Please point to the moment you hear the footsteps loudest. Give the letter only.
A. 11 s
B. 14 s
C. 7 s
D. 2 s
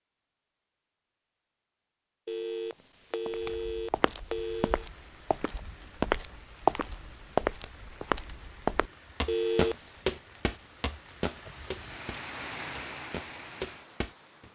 C.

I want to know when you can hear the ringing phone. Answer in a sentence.
You can hear the ringing phone from 2.2 to 4.8 s and from 9.2 to 9.9 s.